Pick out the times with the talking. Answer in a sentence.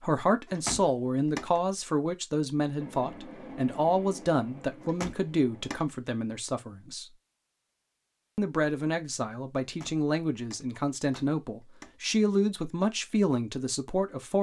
You can hear the talking from 0.0 to 7.0 s and from 8.3 to 14.3 s.